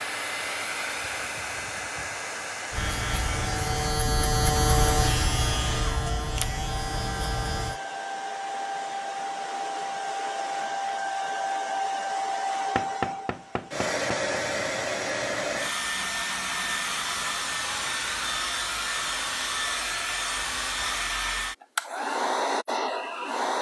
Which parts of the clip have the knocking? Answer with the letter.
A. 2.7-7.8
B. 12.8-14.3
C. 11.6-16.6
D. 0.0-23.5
B.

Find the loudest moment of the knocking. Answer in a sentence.
The loudest moment of the knocking is at 13 seconds.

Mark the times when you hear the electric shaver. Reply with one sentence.
The electric shaver can be heard from 2.7 to 7.8 s.